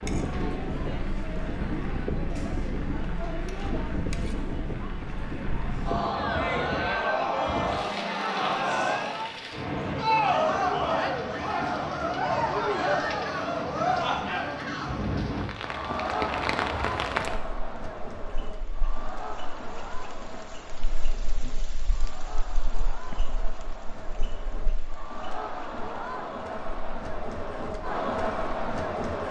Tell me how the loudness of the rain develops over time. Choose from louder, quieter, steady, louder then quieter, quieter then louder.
quieter.